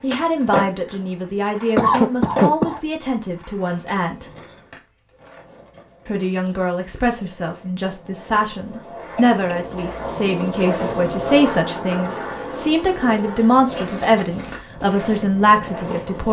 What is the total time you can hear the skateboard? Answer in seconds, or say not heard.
16 s.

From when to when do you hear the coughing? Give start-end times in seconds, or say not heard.
1.8-2.8, 9.2-9.7.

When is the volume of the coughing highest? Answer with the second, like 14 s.
2 s.